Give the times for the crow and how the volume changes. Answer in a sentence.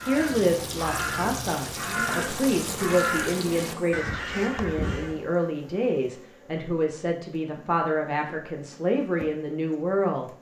You can hear the crow from 0.0 to 5.2 s, at a steady volume.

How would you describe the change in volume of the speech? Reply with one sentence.
The loudness of the speech stays about the same.